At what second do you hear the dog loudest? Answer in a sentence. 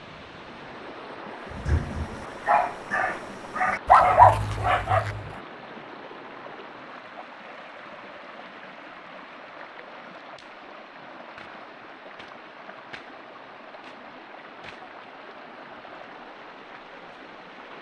The loudest moment of the dog is at 4 seconds.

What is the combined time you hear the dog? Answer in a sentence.
You can hear the dog for 4 seconds altogether.